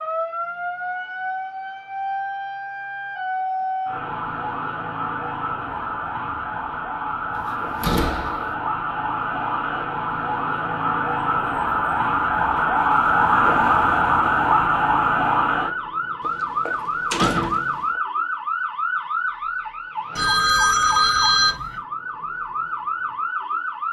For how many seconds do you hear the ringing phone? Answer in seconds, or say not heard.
2 s.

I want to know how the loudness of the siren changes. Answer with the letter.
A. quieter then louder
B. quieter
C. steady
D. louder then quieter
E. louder
D.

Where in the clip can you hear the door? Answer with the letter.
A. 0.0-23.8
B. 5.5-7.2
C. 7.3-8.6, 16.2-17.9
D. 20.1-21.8
C.